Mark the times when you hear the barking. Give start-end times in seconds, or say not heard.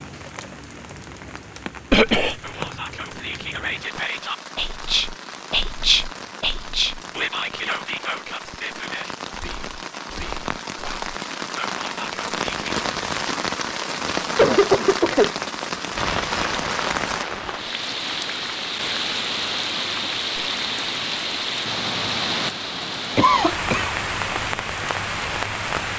not heard.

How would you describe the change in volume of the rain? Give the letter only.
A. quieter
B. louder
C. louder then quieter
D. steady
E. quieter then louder
B.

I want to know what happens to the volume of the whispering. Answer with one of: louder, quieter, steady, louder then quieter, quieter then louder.
louder then quieter.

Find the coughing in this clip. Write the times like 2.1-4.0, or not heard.
1.9-2.4, 14.3-15.3, 23.1-23.9.